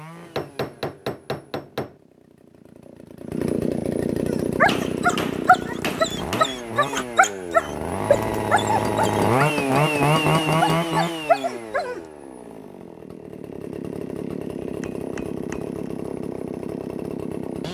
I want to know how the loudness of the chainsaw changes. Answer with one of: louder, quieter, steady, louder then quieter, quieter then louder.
louder then quieter.